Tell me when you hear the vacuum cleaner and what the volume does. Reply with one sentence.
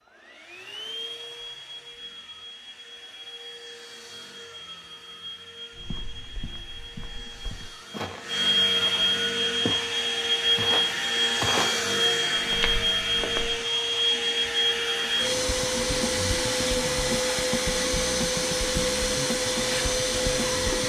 The vacuum cleaner can be heard from 0.0 to 20.8 s, getting louder.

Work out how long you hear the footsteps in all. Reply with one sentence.
You can hear the footsteps for 8 seconds altogether.